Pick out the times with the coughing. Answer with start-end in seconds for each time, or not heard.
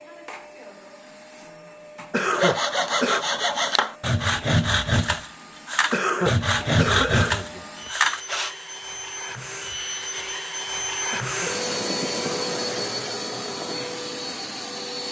2.1-3.2, 5.9-7.9, 11.1-11.6.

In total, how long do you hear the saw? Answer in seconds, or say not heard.
6 s.